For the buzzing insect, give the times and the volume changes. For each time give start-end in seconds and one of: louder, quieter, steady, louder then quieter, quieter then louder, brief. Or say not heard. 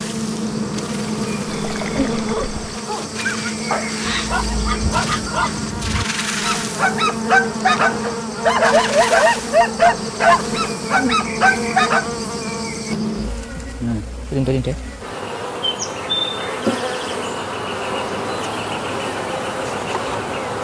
0.0-20.5 steady.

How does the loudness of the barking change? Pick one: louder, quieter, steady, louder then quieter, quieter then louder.
louder.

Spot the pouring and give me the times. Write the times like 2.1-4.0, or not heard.
1.4-2.8.